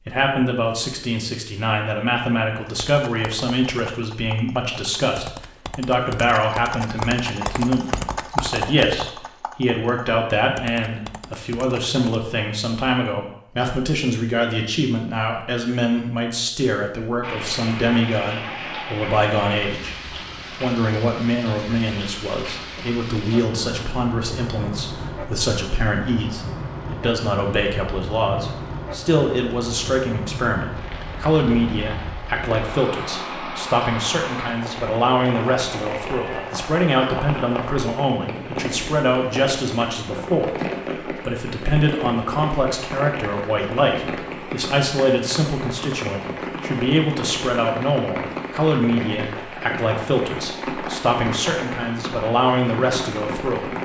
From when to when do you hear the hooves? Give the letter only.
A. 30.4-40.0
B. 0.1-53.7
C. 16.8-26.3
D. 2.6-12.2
D.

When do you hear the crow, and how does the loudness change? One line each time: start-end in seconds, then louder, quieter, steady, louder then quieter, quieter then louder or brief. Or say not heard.
not heard.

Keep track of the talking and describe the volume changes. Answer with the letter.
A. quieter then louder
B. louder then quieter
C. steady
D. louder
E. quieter
C.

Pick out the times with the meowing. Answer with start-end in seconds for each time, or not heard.
not heard.